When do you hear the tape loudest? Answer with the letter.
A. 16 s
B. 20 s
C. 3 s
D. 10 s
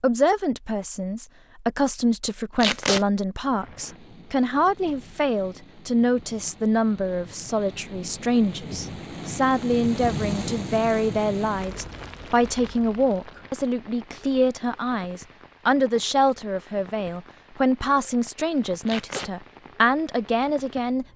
C.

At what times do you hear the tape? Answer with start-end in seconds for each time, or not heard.
2.6-3.0, 18.9-19.3.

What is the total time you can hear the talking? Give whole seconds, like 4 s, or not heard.
21 s.